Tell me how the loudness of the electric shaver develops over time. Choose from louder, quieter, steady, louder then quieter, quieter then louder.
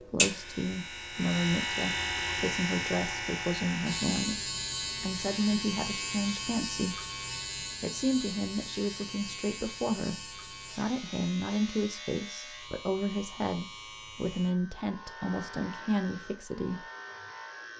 quieter.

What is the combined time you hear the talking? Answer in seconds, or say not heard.
16 s.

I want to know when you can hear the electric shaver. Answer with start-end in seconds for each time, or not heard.
0.0-17.7.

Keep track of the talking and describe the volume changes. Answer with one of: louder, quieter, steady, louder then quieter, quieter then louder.
steady.